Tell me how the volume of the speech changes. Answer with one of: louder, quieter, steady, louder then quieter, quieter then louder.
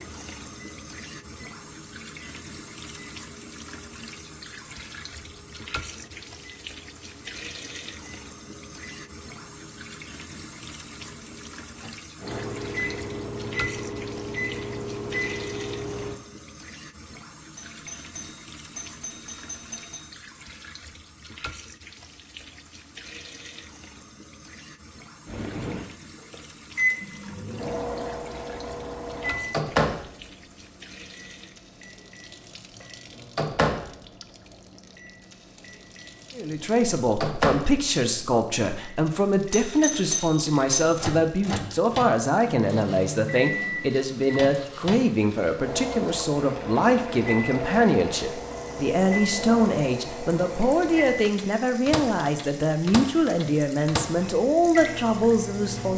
steady.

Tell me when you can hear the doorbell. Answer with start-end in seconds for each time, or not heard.
17.6-20.1, 39.5-40.9.